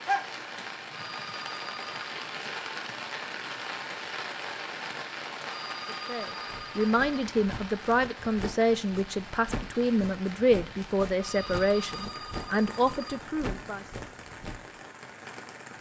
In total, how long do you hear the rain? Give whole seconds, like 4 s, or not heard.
16 s.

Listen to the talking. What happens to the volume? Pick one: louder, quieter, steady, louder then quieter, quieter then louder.
steady.